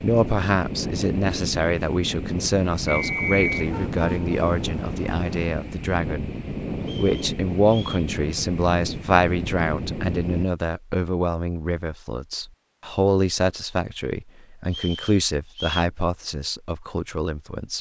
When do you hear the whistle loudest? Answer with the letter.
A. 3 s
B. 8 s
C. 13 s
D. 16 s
A.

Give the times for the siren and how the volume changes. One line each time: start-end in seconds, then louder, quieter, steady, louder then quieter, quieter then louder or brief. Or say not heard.
not heard.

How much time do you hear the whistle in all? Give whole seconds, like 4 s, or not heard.
3 s.